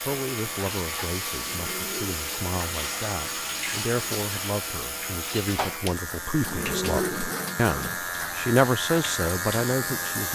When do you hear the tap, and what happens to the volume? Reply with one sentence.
You can hear the tap from 0.0 to 10.2 s, getting quieter.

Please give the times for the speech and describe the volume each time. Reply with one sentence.
The speech can be heard from 0.0 to 10.3 s, getting louder.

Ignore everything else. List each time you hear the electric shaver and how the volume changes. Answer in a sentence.
You can hear the electric shaver from 0.0 to 10.3 s, getting louder.